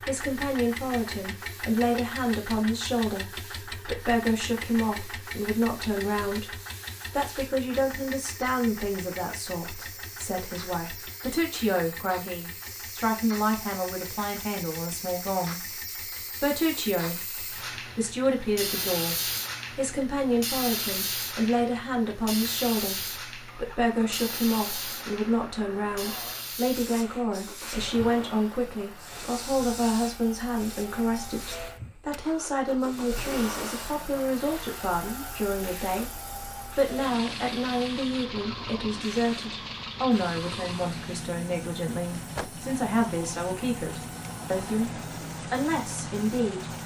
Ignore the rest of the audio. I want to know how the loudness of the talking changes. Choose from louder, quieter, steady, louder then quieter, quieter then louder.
steady.